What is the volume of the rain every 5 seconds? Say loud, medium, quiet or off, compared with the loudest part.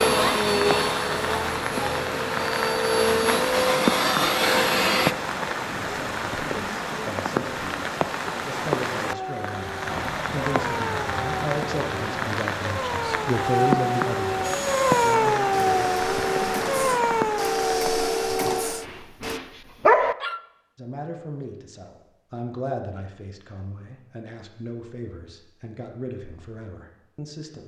loud, loud, loud, loud, off, off.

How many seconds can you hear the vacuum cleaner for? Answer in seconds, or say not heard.
10 s.